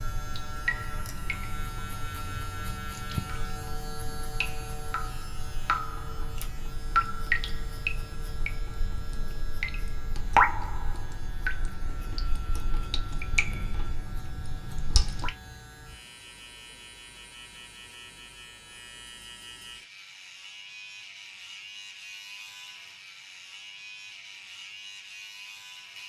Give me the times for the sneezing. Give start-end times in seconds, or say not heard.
not heard.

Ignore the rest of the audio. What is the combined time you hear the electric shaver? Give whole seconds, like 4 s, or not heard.
26 s.